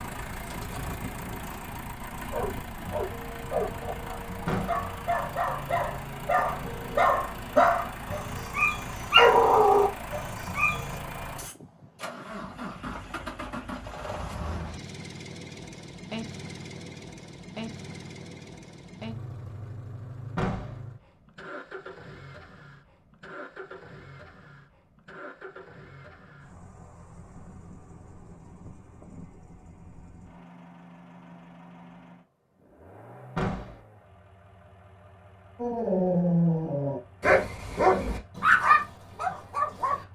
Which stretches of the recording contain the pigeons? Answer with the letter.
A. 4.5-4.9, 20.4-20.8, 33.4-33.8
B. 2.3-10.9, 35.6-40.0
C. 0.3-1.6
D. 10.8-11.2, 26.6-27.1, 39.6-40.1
C.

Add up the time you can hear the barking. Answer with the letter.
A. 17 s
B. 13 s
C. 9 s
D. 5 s
B.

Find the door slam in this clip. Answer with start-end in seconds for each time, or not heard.
4.5-4.9, 20.4-20.8, 33.4-33.8.